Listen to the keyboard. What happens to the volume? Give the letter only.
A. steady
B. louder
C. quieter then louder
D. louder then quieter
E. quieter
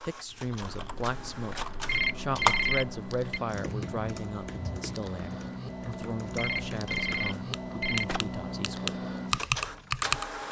C.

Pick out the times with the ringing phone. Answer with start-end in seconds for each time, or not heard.
1.9-3.4, 6.3-8.3.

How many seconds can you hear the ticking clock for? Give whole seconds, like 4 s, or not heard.
not heard.